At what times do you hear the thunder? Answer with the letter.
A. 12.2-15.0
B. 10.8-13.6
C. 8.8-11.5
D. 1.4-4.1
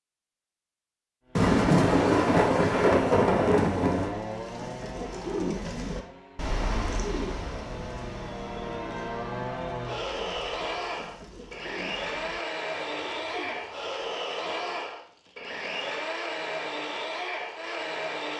D.